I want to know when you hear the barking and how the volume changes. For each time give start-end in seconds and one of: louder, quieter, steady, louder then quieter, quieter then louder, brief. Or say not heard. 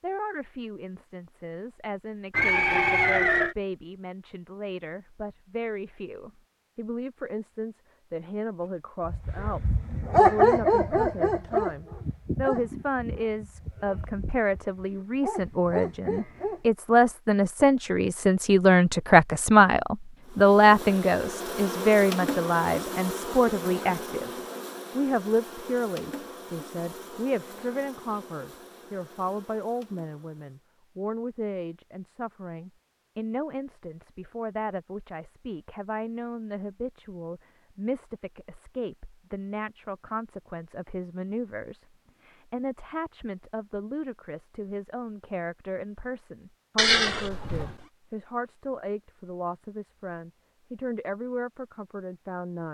9.1-16.6 quieter then louder.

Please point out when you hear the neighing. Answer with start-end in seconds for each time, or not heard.
2.3-3.5, 46.8-47.8.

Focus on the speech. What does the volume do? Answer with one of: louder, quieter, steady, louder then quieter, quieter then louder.
louder then quieter.